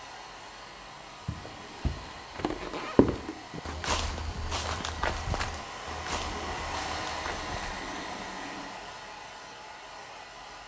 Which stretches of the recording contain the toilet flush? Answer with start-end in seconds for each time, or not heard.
1.3-2.3, 6.0-8.8.